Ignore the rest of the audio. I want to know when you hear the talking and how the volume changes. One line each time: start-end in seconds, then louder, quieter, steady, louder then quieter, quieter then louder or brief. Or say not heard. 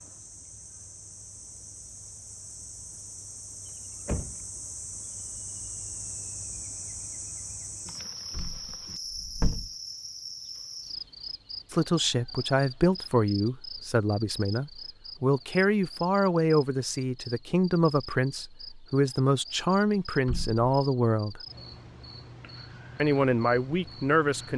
11.7-21.4 steady
22.9-24.5 brief.